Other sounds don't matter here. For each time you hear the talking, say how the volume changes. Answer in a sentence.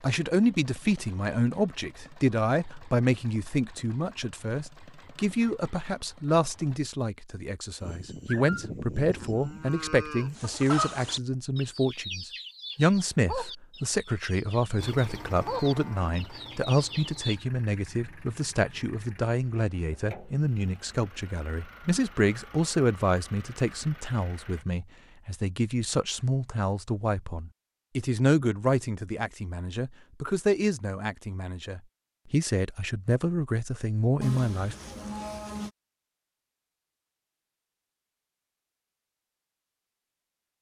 The talking can be heard from 0.0 to 34.8 s, at a steady volume.